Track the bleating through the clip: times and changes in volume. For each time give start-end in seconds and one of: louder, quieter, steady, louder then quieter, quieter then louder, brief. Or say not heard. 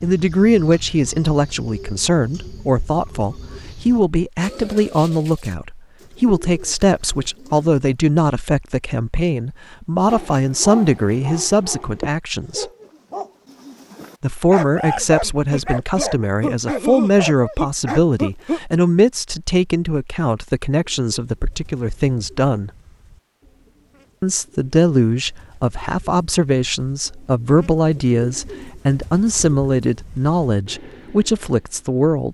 not heard.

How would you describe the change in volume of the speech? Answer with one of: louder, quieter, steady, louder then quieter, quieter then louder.
steady.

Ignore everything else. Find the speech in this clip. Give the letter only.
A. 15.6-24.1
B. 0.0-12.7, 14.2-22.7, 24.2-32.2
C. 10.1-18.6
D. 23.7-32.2
B.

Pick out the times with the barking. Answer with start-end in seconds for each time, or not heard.
10.1-18.6.